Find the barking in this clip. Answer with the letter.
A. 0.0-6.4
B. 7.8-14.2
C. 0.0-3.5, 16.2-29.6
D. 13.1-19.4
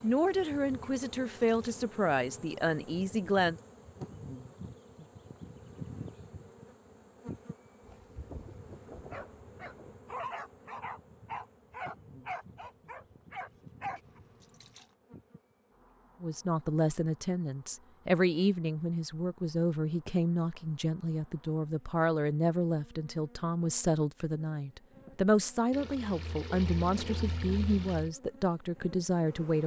B.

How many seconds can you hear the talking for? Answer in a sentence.
The talking can be heard for 17 seconds in total.